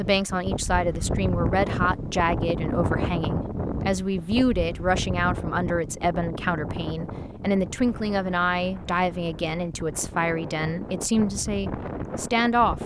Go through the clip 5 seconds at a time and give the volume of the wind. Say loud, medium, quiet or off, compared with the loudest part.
loud, medium, medium.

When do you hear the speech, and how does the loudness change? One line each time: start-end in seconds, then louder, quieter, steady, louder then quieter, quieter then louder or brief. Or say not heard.
0.0-12.8 steady.